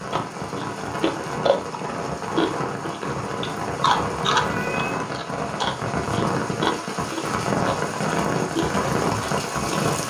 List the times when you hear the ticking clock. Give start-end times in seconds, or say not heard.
not heard.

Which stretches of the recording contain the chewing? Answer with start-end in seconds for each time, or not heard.
0.1-10.0.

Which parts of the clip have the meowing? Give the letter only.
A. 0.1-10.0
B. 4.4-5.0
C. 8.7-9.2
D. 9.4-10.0
B.